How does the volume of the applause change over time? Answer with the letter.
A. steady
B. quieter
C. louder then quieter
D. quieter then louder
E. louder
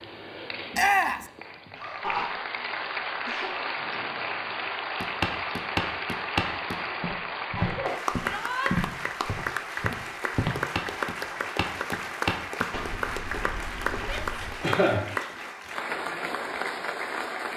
A.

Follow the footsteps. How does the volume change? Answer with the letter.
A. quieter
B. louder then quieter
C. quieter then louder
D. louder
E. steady
A.